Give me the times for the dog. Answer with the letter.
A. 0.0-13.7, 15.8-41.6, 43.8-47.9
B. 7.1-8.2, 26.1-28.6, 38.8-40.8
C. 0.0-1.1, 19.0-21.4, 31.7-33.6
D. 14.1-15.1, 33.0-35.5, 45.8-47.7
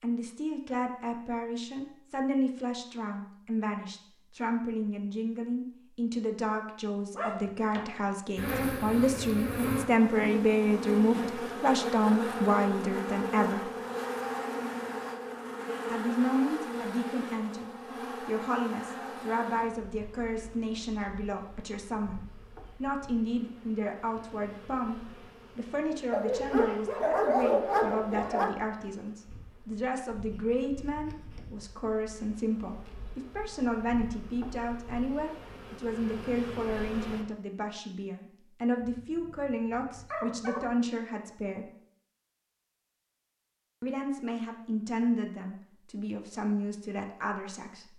B.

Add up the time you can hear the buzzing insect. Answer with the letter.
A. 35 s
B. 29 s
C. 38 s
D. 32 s
B.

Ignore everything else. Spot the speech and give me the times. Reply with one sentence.
You can hear the speech from 0.0 to 13.7 s, from 15.8 to 41.6 s and from 43.8 to 47.9 s.